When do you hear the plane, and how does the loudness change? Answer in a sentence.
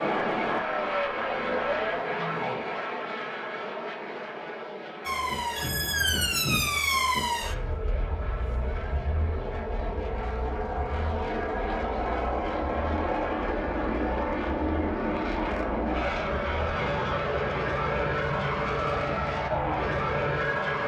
You can hear the plane from 0.0 to 20.8 s, getting quieter then louder.